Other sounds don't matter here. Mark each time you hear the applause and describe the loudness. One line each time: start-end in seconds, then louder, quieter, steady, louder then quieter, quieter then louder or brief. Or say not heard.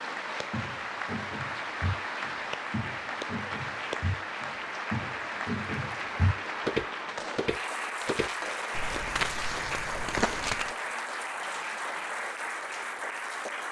0.0-13.6 steady.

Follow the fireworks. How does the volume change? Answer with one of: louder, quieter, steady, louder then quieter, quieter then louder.
steady.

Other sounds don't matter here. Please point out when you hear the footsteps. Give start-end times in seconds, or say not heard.
0.5-10.7.